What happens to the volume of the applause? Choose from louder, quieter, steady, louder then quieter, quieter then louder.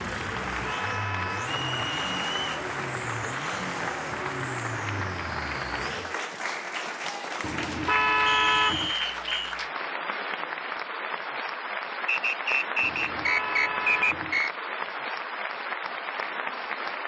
steady.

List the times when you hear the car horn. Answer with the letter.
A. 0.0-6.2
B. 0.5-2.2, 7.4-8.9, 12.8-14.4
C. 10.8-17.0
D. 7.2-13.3
B.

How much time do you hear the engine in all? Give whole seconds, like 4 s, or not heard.
6 s.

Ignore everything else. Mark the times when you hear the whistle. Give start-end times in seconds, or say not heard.
1.4-2.4, 8.2-9.6, 12.1-14.5.